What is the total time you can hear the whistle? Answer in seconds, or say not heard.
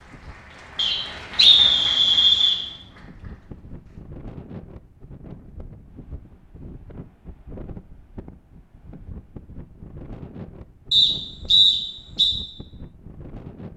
3 s.